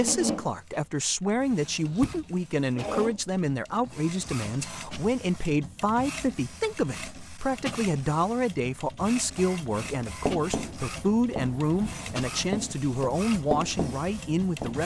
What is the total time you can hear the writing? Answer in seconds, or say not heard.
5 s.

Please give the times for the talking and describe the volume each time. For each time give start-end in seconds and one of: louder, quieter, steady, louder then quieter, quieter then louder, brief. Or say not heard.
0.0-14.8 steady.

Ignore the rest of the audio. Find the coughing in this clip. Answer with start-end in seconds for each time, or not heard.
not heard.